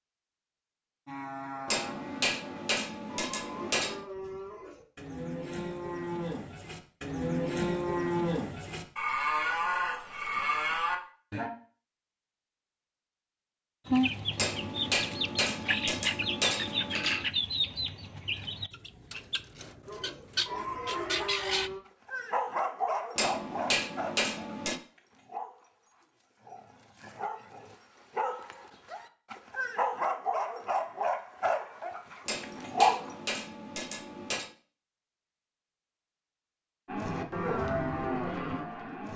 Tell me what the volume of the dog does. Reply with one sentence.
The loudness of the dog goes down, then up.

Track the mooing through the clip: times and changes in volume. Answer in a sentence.
You can hear the mooing from 1.1 to 11.5 s, getting louder; briefly from 19.9 to 21.8 s; and briefly from 36.9 to 39.1 s.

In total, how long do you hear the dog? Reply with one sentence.
The dog can be heard for 11 seconds in total.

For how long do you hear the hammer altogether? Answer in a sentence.
You can hear the hammer for 9 seconds altogether.